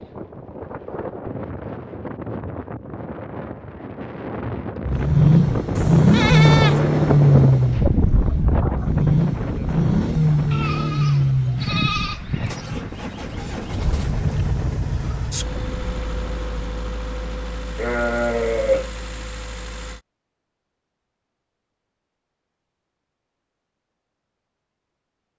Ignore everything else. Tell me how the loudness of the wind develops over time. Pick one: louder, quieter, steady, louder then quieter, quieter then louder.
louder then quieter.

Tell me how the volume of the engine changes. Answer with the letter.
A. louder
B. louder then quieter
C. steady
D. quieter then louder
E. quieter
E.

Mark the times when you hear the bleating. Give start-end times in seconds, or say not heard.
5.8-6.8, 10.5-12.8, 17.8-18.9.